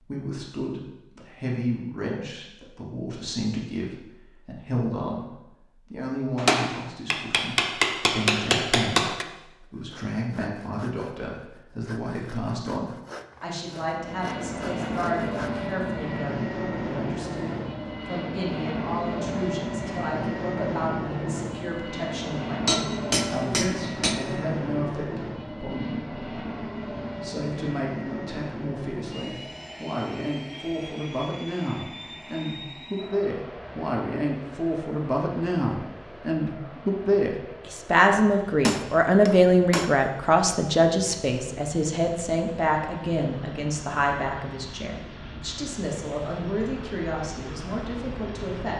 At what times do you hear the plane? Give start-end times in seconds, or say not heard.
13.8-48.7.